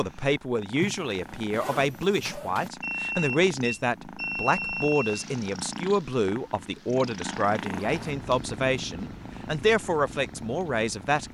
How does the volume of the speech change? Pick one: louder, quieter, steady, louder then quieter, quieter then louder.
steady.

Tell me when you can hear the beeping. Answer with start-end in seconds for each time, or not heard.
2.8-5.2.